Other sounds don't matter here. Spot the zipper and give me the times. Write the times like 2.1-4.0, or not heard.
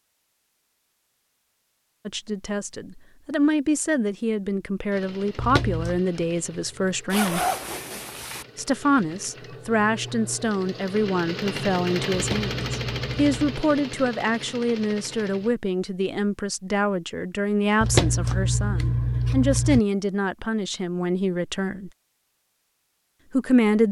7.1-8.4.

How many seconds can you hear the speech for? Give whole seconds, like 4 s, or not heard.
19 s.